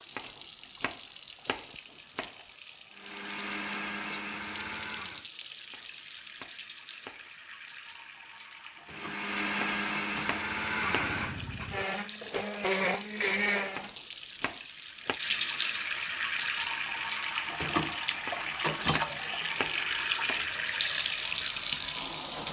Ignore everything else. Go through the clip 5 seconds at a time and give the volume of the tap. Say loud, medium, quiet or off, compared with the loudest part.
quiet, quiet, quiet, loud, loud.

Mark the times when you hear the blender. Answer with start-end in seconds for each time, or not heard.
2.9-5.2, 8.9-13.9.